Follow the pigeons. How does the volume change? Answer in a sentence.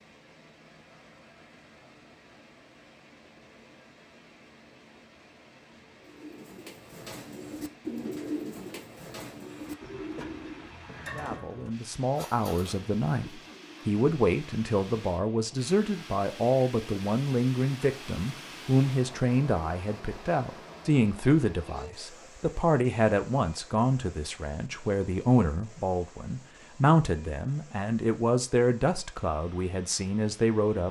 The volume of the pigeons goes up, then down.